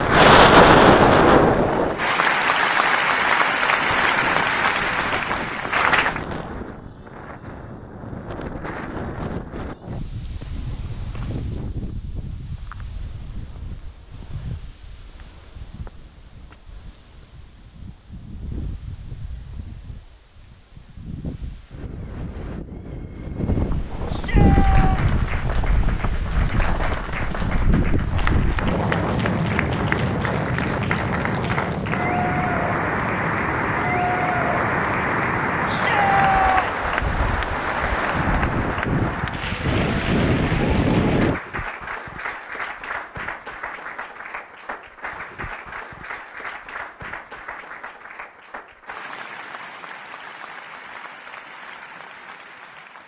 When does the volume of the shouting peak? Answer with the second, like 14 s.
36 s.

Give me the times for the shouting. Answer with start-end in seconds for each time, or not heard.
24.1-25.0, 35.6-36.9.